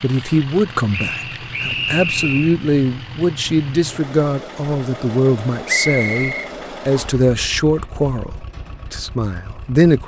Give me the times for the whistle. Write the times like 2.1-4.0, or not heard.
0.9-2.5, 5.7-7.2.